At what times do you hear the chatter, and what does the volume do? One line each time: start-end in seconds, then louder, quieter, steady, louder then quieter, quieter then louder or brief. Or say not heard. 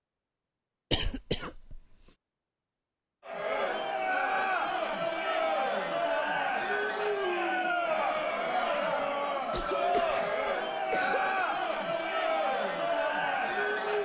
3.2-13.9 steady.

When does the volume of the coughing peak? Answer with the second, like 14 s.
1 s.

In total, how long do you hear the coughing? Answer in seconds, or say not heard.
3 s.